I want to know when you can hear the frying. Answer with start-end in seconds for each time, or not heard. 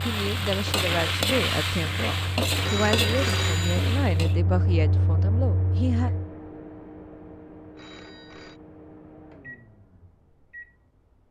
0.0-4.3.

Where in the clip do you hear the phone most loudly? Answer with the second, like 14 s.
3 s.